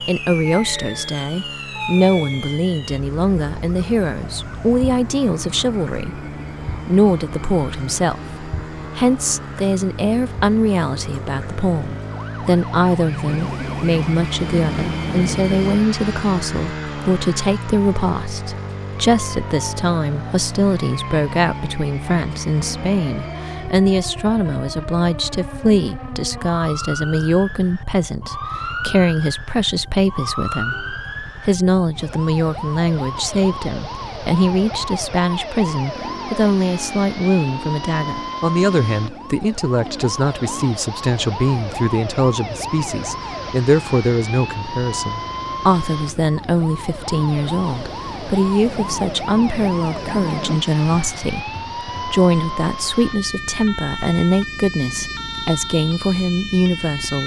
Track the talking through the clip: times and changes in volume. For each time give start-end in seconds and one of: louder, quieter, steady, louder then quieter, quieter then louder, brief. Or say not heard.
0.0-57.2 steady.